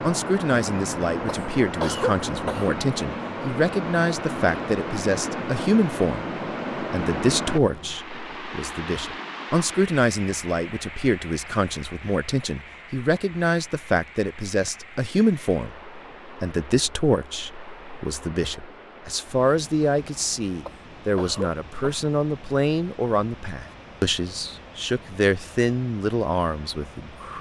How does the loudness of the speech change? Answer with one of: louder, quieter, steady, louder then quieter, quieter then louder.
steady.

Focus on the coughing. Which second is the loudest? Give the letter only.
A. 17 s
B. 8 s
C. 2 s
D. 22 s
C.